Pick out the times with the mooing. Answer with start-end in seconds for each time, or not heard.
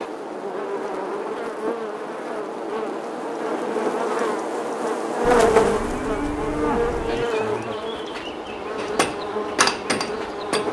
5.2-7.2.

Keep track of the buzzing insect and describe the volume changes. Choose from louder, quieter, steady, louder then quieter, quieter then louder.
louder then quieter.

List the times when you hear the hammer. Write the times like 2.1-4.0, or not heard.
8.8-10.6.